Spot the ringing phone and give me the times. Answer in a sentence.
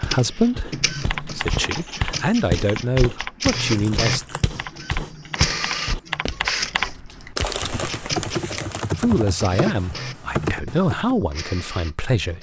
You can't hear the ringing phone here.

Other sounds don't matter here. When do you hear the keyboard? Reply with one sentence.
You can hear the keyboard from 0.3 to 11.2 s.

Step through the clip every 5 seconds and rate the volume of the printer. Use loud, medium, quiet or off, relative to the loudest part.
loud, loud, medium.